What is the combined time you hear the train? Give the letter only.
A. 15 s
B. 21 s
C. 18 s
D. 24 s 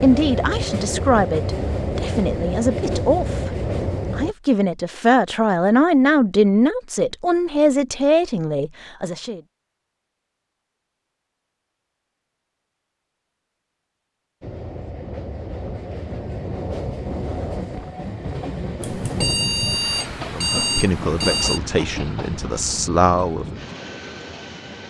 A.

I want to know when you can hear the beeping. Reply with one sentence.
The beeping can be heard from 18.8 to 21.6 s.